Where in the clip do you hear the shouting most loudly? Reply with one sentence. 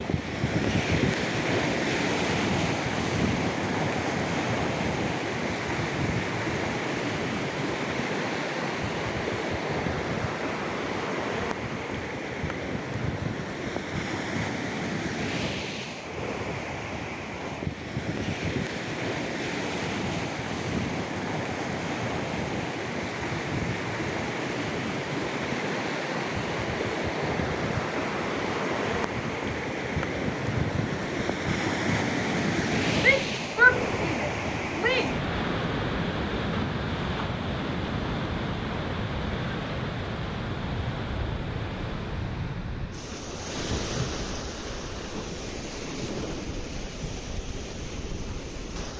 The volume of the shouting peaks at 34 seconds.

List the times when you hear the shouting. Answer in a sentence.
The shouting can be heard from 33.0 to 35.2 s.